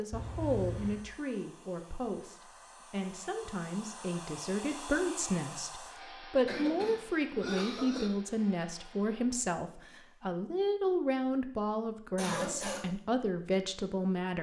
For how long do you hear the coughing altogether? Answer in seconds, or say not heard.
3 s.